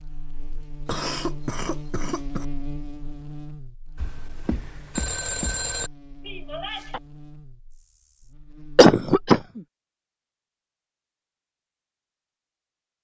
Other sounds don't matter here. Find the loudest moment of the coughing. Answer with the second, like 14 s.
9 s.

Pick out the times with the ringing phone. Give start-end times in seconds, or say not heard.
4.0-5.9.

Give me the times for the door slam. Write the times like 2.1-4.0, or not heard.
not heard.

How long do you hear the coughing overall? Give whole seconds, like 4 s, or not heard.
3 s.